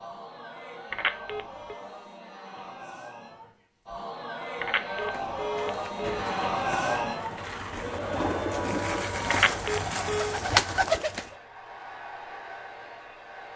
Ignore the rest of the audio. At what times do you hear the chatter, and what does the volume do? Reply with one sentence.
The chatter can be heard from 0.0 to 13.5 s, getting louder then quieter.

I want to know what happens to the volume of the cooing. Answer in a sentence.
The volume of the cooing goes up.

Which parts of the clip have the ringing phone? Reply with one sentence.
You can hear the ringing phone from 0.9 to 1.8 s, from 4.6 to 6.2 s and from 9.3 to 10.4 s.